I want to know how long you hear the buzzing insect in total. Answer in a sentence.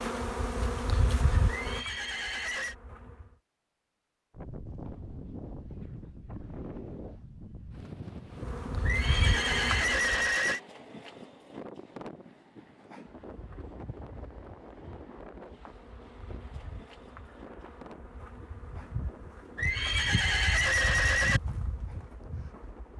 The buzzing insect can be heard for 15 seconds in total.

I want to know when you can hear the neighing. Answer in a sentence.
The neighing can be heard from 1.4 to 2.8 s, from 8.8 to 10.6 s and from 19.6 to 21.4 s.